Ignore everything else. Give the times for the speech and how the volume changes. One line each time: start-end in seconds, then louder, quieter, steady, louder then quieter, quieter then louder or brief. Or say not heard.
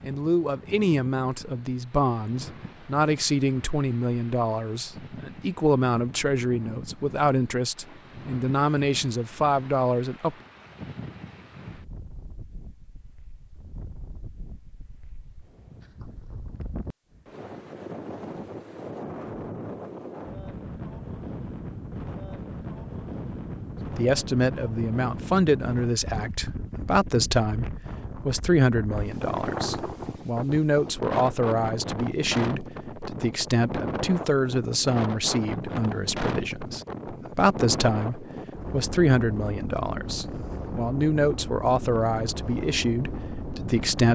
0.0-10.3 steady
23.9-44.1 steady.